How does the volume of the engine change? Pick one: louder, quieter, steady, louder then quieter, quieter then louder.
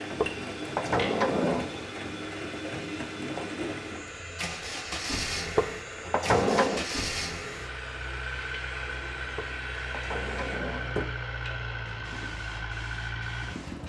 steady.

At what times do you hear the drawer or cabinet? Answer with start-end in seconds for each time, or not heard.
0.2-1.8, 5.5-6.8, 9.3-11.2.